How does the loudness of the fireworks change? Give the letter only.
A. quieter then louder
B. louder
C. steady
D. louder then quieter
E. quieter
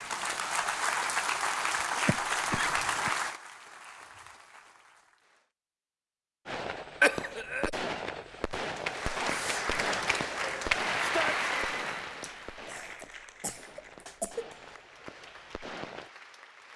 E.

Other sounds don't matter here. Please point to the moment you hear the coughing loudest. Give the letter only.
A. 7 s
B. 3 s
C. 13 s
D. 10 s
A.